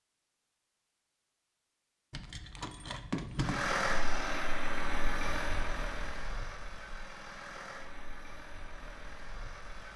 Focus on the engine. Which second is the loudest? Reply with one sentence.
The volume of the engine peaks at 4 seconds.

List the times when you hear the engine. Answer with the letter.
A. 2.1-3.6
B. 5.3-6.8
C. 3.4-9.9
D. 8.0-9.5
C.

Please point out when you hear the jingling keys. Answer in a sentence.
The jingling keys can be heard from 2.1 to 3.6 s.